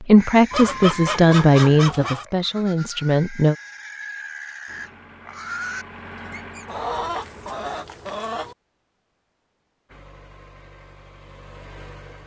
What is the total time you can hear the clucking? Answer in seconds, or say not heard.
4 s.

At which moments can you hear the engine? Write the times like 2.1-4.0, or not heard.
4.7-7.7, 9.8-12.2.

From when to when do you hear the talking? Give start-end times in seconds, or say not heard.
0.0-3.5.